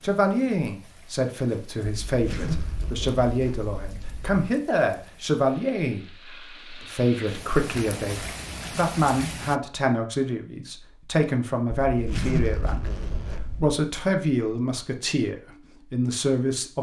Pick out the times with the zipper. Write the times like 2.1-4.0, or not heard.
1.9-4.5, 11.8-13.8.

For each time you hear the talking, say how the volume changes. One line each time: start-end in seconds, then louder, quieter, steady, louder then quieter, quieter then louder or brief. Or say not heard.
0.0-16.7 steady.